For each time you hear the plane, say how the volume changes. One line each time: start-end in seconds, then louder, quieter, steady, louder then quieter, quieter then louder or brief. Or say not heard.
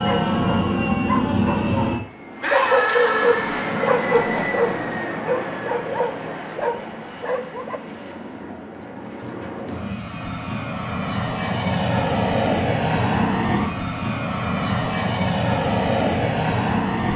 0.0-17.1 quieter then louder.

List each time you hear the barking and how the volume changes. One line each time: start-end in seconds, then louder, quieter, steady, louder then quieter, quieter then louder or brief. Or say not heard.
0.0-7.8 louder then quieter.